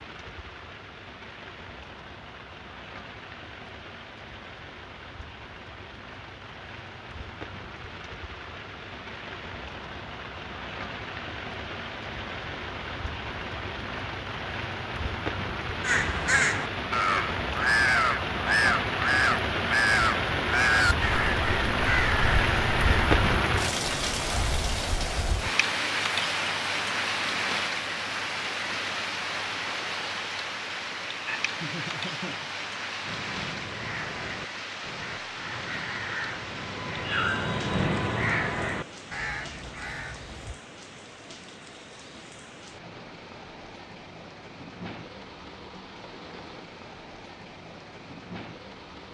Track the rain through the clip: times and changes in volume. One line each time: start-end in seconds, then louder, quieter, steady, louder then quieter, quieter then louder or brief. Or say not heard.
0.0-49.0 louder then quieter.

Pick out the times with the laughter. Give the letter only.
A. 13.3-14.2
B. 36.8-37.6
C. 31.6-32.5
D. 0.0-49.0
C.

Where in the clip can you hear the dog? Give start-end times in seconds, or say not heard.
not heard.